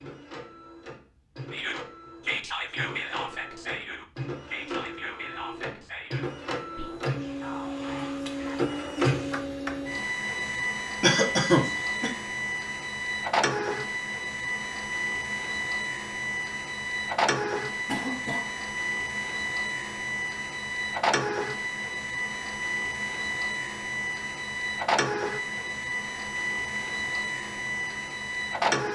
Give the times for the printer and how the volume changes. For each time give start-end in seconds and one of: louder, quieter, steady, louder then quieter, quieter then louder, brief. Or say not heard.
0.0-28.9 louder.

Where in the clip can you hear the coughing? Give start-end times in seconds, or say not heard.
11.0-12.1, 17.9-18.5.